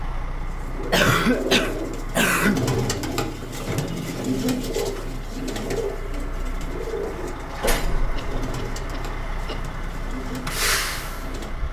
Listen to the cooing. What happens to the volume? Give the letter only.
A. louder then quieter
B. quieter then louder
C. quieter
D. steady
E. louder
C.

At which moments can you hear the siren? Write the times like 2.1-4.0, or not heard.
not heard.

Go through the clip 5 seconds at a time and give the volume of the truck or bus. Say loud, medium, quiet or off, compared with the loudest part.
medium, medium, loud.